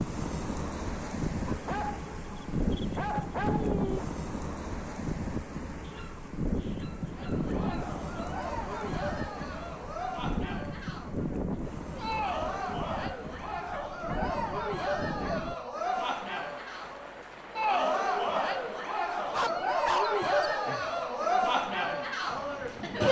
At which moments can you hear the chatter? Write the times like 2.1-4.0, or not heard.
7.1-23.0.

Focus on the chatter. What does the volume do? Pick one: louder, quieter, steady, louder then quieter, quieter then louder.
louder.